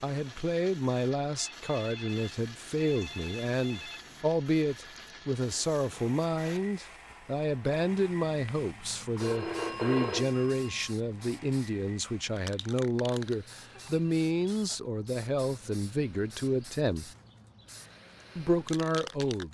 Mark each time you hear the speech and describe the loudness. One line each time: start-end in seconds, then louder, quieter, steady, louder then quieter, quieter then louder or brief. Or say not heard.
0.0-17.1 steady
18.4-19.4 brief.